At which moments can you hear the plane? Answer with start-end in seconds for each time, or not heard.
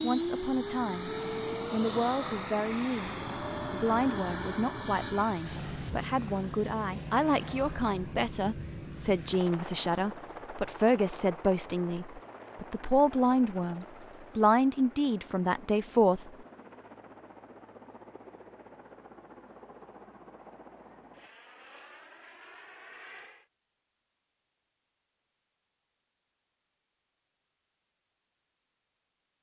0.0-23.4.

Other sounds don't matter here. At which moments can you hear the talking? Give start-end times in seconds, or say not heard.
0.0-16.2.